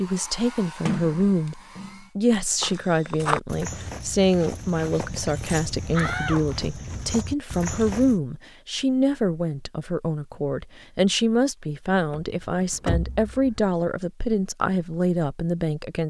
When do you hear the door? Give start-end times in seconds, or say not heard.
0.8-2.0, 6.0-7.1, 12.1-13.6.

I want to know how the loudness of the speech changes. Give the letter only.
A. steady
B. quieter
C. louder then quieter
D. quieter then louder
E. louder
A.